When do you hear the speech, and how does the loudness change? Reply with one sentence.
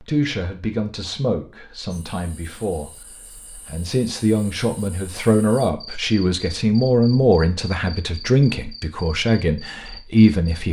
The speech can be heard from 0.0 to 10.6 s, getting louder.